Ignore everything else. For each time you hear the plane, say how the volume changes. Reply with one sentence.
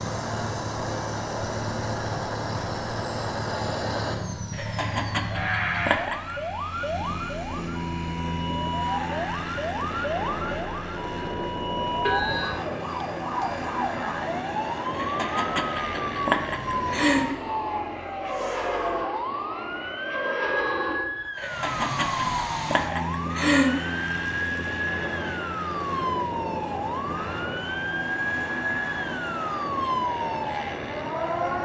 The plane can be heard from 0.0 to 31.6 s, at a steady volume.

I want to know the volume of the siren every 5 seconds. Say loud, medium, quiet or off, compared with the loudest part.
medium, loud, loud, loud, loud, loud, loud.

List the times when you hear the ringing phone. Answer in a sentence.
The ringing phone can be heard from 12.1 to 12.7 s and from 20.4 to 21.3 s.